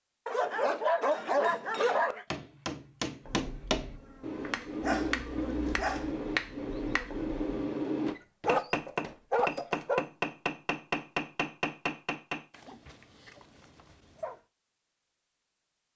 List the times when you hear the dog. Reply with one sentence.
The dog can be heard from 0.2 to 2.2 s, from 4.8 to 6.2 s, from 8.1 to 10.1 s and from 12.5 to 14.4 s.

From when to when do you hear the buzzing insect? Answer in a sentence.
The buzzing insect can be heard from 3.2 to 7.3 s.